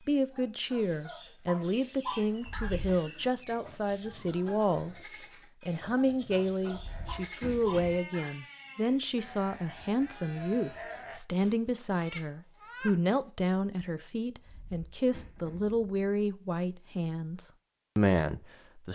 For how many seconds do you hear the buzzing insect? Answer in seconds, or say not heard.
not heard.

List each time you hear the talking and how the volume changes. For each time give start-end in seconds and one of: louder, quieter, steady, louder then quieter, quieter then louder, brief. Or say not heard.
0.1-18.9 steady.